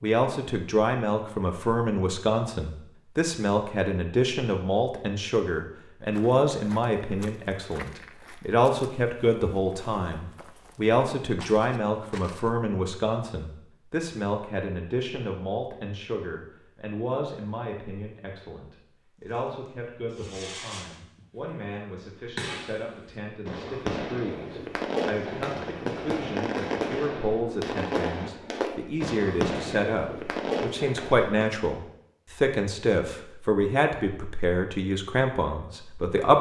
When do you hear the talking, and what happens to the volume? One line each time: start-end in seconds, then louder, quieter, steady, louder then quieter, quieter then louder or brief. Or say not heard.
0.0-36.3 quieter then louder.